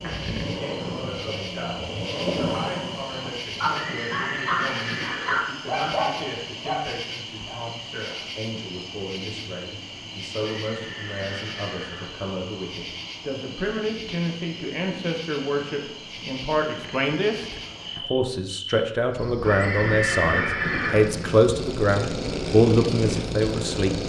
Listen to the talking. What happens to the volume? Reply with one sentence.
The loudness of the talking goes up.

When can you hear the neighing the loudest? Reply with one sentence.
The loudest moment of the neighing is at 20 seconds.